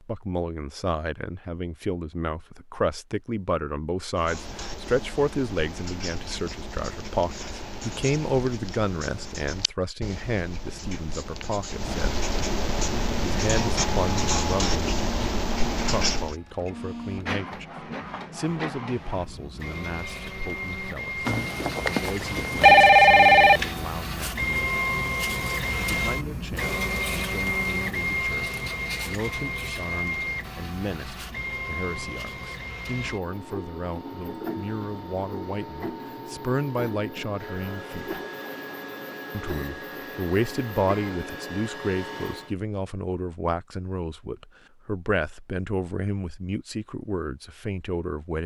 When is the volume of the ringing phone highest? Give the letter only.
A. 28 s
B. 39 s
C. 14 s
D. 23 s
D.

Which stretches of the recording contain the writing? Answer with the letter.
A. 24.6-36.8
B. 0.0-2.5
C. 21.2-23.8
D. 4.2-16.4
D.